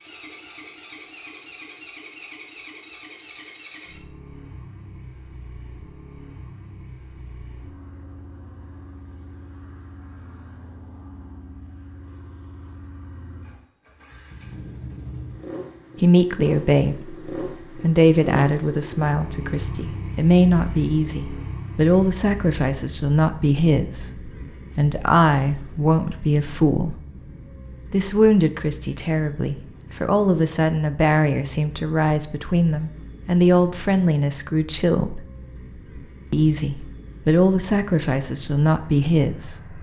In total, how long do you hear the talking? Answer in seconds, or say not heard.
22 s.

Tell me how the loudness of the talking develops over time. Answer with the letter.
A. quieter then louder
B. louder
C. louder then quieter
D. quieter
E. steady
E.